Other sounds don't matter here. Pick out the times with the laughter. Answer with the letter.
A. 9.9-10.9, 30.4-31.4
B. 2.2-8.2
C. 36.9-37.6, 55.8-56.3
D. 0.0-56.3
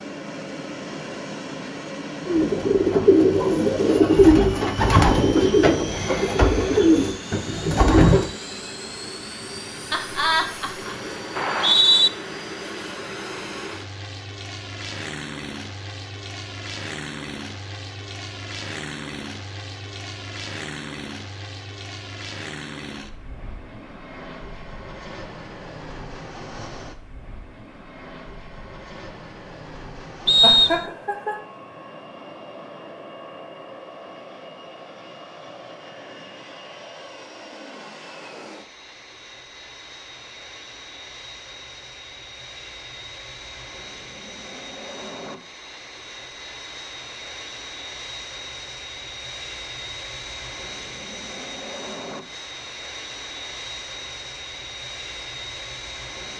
A.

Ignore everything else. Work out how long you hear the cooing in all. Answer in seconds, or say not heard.
6 s.